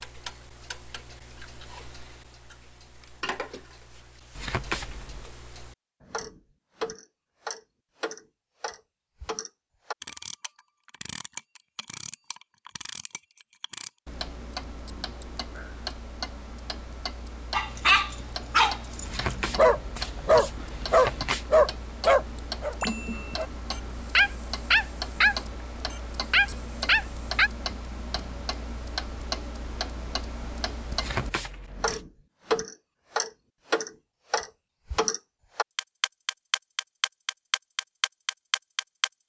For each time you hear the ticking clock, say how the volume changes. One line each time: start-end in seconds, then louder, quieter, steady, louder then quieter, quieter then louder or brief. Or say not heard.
0.0-39.2 louder.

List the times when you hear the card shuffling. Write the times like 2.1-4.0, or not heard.
4.3-5.3, 19.1-21.4, 30.9-32.0.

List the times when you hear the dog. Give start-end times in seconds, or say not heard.
17.5-27.5.